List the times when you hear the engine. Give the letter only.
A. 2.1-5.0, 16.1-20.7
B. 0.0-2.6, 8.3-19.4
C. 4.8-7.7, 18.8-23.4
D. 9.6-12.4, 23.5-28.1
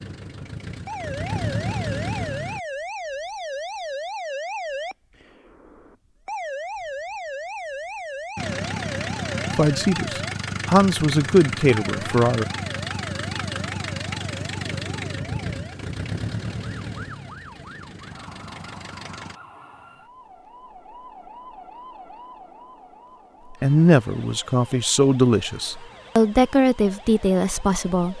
B.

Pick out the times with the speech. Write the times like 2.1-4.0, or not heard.
9.6-12.4, 23.5-28.1.